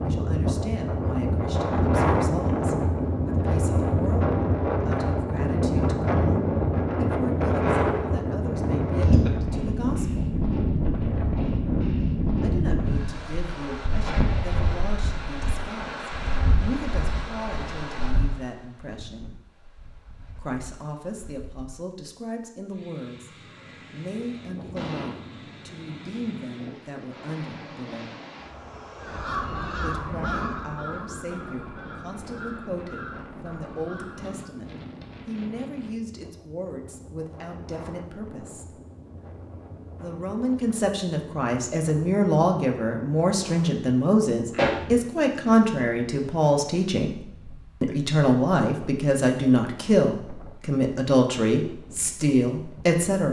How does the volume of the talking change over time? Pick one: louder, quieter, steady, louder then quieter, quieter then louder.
louder.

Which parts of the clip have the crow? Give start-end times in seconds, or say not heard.
28.9-34.5.